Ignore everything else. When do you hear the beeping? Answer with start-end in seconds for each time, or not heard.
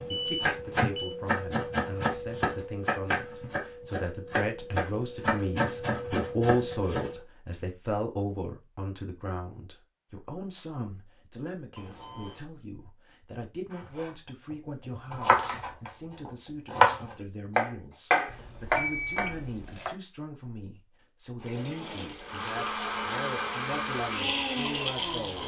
0.1-1.1, 11.8-12.4, 18.2-19.9.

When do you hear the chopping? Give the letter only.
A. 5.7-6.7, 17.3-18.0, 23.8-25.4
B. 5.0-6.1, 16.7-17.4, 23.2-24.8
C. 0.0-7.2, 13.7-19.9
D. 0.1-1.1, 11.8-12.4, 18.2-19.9
C.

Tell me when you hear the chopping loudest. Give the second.
17 s.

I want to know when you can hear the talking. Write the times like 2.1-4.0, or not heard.
0.0-25.4.